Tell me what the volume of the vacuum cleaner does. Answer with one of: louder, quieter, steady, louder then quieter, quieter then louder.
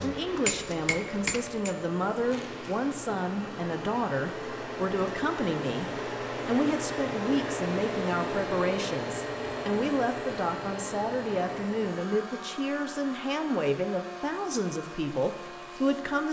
louder then quieter.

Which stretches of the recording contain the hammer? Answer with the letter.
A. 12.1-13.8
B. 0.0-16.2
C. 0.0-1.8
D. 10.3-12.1
C.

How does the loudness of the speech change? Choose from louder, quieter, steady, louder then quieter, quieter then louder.
steady.